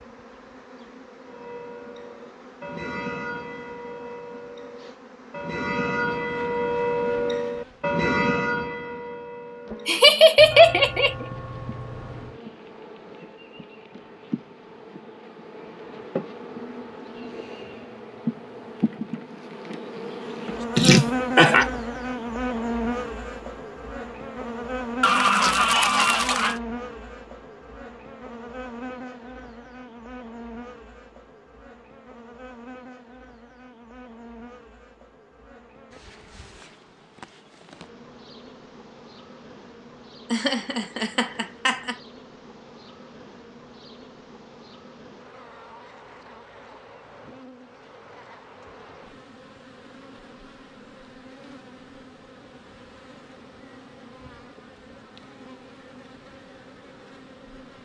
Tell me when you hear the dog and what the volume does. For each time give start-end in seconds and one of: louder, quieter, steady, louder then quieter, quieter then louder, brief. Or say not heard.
not heard.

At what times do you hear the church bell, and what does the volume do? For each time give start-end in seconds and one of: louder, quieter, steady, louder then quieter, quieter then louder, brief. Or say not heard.
1.2-12.4 louder then quieter.